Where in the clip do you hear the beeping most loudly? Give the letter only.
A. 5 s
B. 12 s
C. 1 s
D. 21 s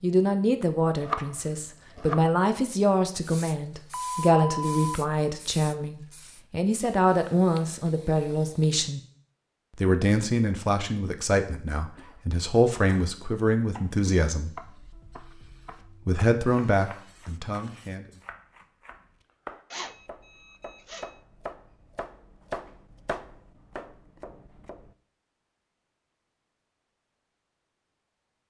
A.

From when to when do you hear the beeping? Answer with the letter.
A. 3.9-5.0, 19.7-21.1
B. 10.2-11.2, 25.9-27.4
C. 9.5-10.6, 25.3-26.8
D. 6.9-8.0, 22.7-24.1
A.